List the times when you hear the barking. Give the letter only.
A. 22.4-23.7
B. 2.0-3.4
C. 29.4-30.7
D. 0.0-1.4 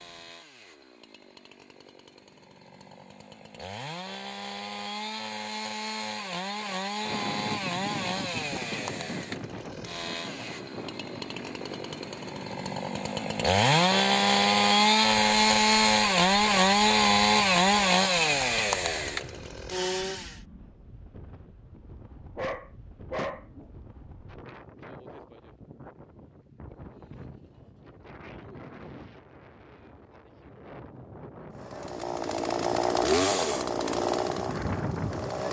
A.